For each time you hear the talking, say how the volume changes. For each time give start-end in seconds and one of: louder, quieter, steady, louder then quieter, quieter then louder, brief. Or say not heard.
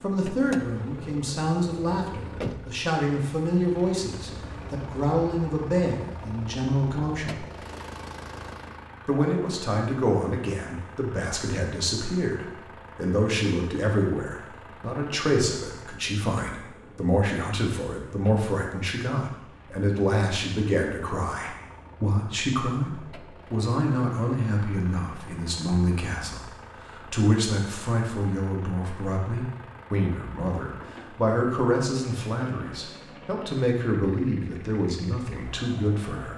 0.0-7.5 steady
9.1-36.3 steady.